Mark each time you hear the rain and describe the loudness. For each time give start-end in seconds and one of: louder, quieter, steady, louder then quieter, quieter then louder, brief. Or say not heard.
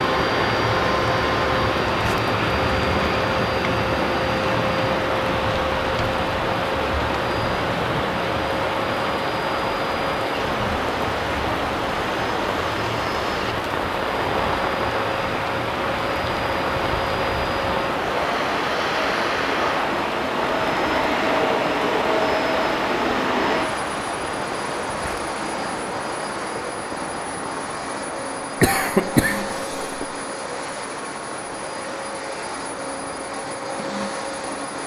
0.0-34.8 quieter.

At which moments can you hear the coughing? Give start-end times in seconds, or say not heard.
28.6-30.1.